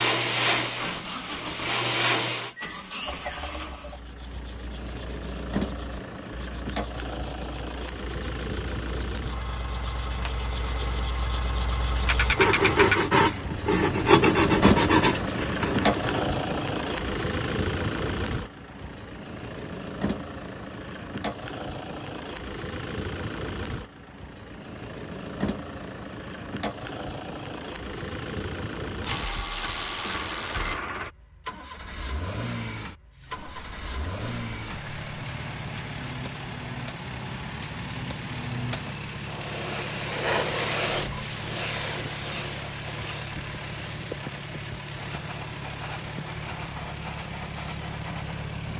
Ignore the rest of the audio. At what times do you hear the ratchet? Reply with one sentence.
The ratchet can be heard from 12.1 to 13.0 s and from 29.0 to 30.8 s.